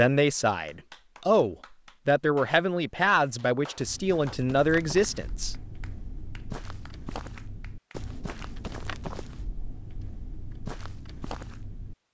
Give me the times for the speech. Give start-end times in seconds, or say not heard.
0.0-5.5.